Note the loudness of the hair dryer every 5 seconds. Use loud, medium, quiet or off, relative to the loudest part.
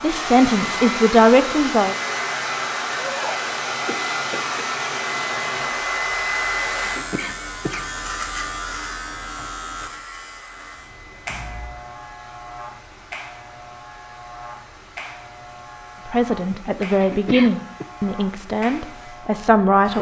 loud, loud, quiet, quiet.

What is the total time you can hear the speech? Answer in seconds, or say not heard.
6 s.